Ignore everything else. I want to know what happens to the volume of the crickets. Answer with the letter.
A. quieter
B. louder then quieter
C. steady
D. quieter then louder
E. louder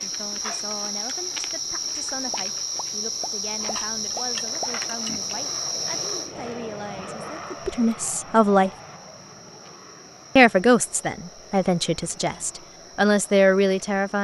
A.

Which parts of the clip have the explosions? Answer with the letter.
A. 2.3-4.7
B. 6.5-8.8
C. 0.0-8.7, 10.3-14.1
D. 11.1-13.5
A.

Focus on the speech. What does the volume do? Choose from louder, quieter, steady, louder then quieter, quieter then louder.
louder.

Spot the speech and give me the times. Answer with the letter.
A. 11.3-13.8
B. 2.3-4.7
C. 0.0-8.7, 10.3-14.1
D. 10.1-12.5
C.